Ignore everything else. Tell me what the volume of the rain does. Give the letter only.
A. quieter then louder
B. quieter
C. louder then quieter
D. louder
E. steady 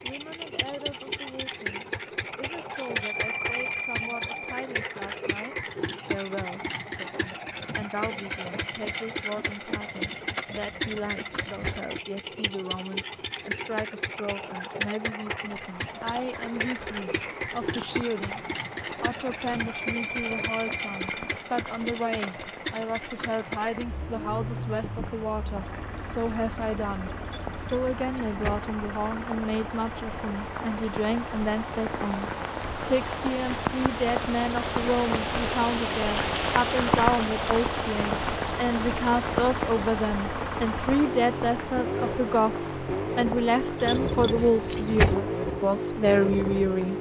C.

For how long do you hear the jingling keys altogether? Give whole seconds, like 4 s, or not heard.
4 s.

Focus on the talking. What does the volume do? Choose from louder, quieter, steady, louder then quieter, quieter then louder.
louder.